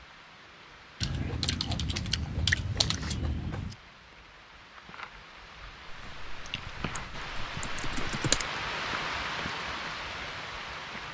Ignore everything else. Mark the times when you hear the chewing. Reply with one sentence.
The chewing can be heard from 1.0 to 3.8 s and from 5.8 to 8.4 s.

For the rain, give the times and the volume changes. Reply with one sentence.
You can hear the rain from 0.0 to 11.0 s, getting louder.